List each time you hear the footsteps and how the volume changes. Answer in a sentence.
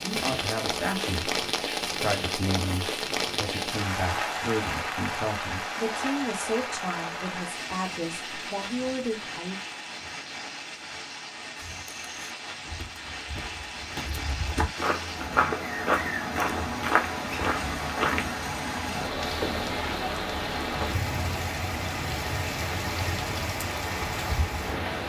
You can hear the footsteps from 11.6 to 18.3 s, getting louder.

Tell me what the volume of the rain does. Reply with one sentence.
The loudness of the rain goes down, then up.